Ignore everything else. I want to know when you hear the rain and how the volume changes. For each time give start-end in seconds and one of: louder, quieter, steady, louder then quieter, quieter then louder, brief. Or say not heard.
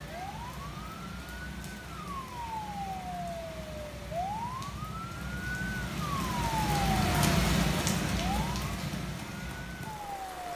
0.0-10.5 louder then quieter.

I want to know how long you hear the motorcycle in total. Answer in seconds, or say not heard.
not heard.